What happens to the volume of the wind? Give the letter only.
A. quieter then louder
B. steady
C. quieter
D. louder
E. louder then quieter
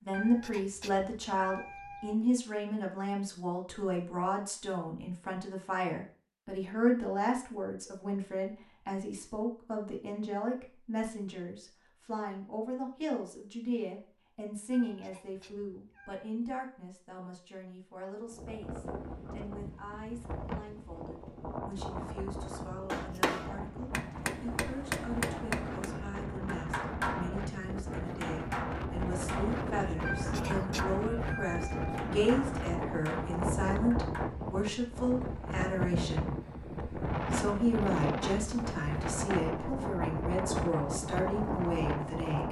D.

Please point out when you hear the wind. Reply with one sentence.
The wind can be heard from 18.2 to 42.4 s.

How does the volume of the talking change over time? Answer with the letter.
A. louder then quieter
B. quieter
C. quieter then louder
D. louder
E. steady
C.